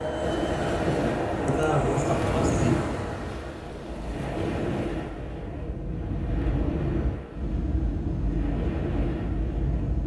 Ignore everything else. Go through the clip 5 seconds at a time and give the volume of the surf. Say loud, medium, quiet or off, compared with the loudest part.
loud, medium.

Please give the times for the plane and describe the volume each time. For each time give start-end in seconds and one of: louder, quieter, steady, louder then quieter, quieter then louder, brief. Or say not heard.
0.0-10.0 quieter then louder.